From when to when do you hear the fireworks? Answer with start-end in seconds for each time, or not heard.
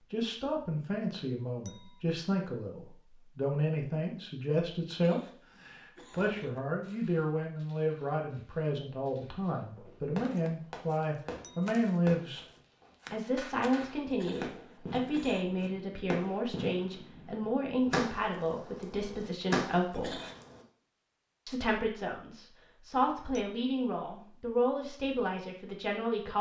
9.9-20.6.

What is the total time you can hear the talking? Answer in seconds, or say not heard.
24 s.